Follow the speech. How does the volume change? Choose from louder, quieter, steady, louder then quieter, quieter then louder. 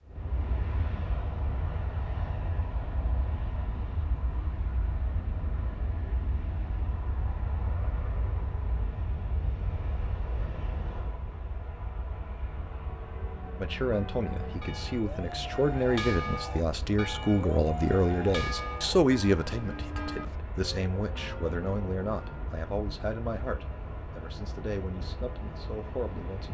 quieter.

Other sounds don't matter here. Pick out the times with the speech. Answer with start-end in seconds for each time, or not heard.
13.6-26.4.